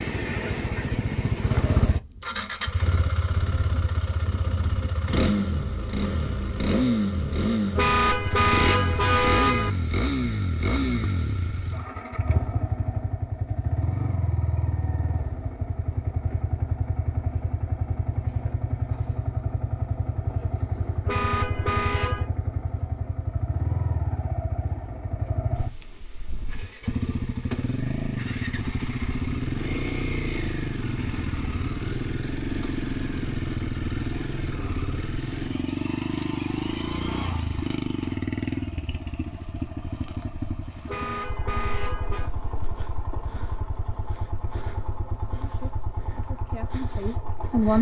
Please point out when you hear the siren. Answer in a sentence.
The siren can't be heard in this clip.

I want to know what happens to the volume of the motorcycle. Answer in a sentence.
The loudness of the motorcycle goes down.